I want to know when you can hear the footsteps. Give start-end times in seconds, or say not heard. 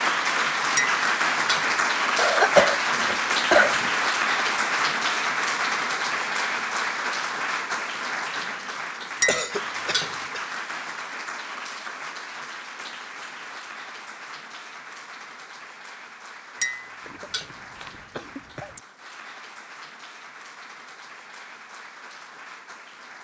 not heard.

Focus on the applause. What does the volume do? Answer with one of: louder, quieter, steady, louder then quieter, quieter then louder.
quieter.